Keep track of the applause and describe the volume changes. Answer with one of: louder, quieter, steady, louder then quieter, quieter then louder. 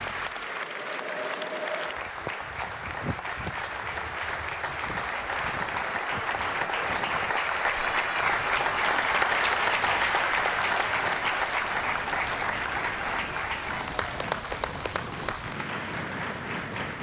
louder then quieter.